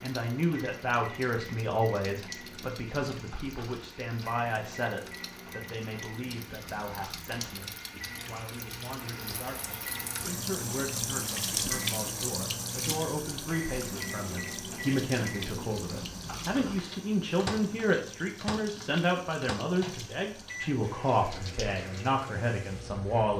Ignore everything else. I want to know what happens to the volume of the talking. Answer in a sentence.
The volume of the talking goes down, then up.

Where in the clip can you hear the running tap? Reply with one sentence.
You can hear the running tap from 0.0 to 23.3 s.